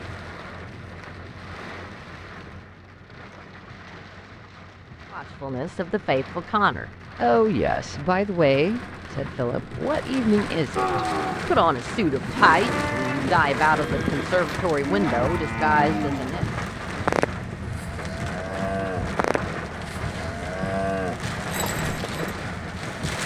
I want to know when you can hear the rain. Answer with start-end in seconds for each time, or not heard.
0.0-23.2.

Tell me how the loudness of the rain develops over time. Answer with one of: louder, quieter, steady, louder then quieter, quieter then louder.
louder.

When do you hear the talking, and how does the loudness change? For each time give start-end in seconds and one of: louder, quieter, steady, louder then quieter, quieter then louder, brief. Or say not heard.
5.1-16.4 steady.